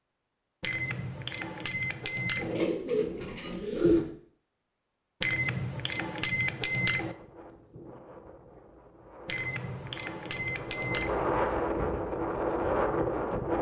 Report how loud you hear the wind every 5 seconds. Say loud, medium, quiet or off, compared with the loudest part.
off, quiet, loud.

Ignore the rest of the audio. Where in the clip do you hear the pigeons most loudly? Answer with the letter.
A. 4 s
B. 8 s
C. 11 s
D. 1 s
A.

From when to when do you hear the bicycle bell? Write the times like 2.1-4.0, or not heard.
0.6-2.5, 5.2-7.2, 9.2-11.2.